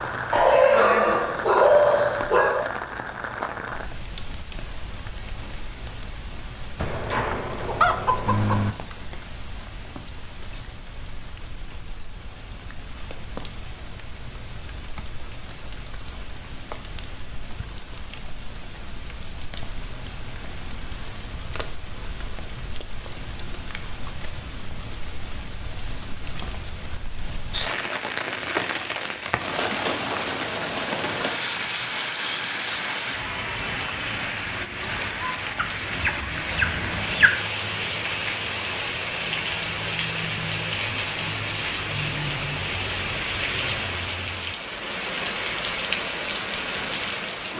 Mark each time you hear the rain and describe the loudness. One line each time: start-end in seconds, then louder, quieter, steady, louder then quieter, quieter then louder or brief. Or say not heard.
0.0-47.5 quieter then louder.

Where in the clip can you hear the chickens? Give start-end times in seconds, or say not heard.
6.8-8.7, 35.5-37.3.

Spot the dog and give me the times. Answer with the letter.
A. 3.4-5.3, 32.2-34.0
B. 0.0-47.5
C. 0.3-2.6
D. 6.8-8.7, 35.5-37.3
C.